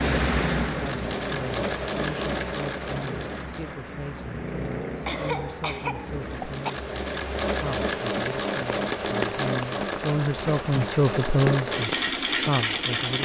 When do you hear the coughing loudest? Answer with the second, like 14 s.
5 s.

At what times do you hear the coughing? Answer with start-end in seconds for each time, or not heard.
5.0-6.8.